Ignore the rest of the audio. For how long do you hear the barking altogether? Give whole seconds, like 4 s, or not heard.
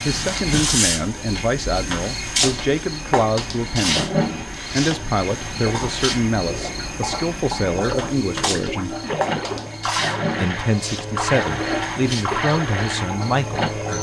not heard.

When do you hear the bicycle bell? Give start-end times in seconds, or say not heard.
not heard.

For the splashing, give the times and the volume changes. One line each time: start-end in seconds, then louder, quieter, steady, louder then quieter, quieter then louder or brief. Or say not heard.
7.8-13.7 steady.